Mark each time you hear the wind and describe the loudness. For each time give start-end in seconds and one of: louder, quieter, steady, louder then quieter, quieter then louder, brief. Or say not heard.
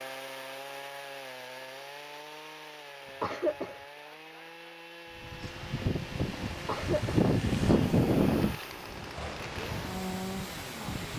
5.1-11.1 louder then quieter.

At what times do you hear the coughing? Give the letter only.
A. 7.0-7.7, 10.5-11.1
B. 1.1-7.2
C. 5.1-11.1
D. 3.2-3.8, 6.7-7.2
D.